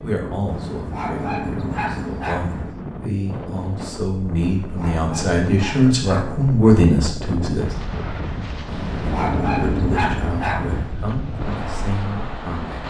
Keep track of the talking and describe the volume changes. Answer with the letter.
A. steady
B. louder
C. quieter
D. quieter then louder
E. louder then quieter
E.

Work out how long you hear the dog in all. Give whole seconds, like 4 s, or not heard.
7 s.